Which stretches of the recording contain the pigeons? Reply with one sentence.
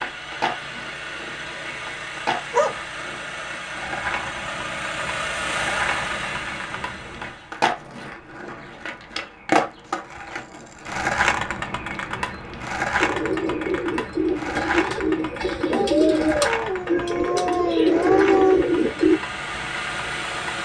The pigeons can be heard from 12.9 to 19.2 s.